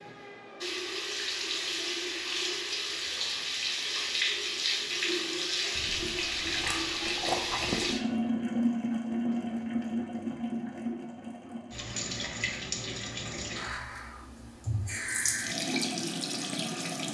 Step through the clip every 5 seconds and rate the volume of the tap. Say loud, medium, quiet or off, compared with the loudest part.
loud, loud, medium, loud.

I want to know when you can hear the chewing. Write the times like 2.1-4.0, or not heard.
5.8-8.0.